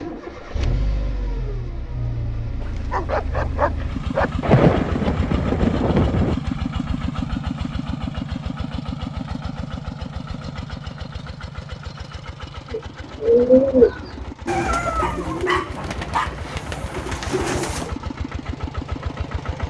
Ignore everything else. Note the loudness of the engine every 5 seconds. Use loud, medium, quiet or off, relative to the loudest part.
loud, loud, medium, medium.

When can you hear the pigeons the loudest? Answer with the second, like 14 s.
14 s.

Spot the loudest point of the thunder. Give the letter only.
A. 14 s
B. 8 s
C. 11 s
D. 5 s
D.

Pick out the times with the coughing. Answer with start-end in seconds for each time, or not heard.
not heard.